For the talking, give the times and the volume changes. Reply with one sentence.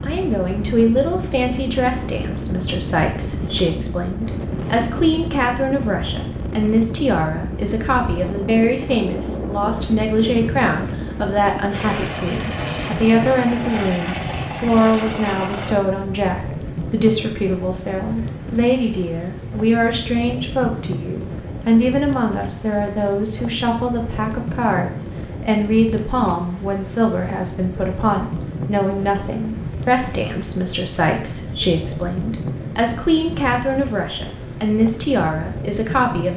You can hear the talking from 0.0 to 36.3 s, at a steady volume.